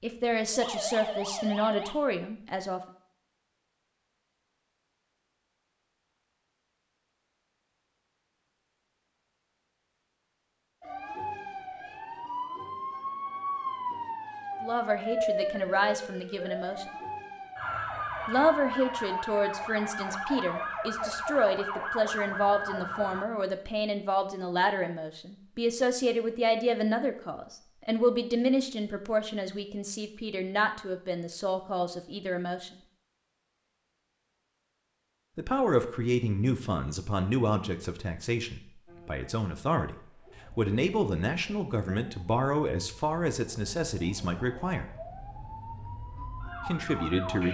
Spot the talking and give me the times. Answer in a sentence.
You can hear the talking from 0.0 to 2.8 s, from 14.6 to 16.9 s, from 18.2 to 32.8 s, from 35.4 to 40.0 s, from 40.5 to 44.9 s and from 46.6 to 47.4 s.